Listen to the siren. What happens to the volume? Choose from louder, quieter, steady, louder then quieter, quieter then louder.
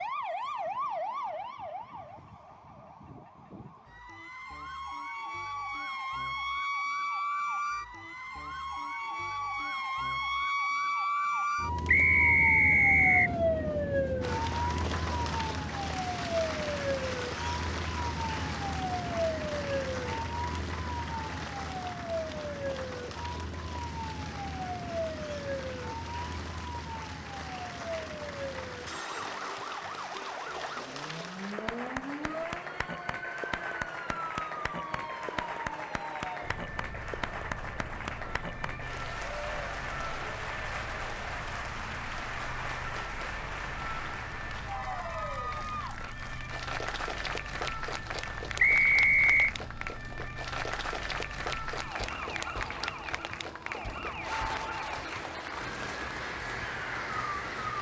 quieter.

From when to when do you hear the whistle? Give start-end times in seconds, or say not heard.
11.8-13.3, 48.5-49.5.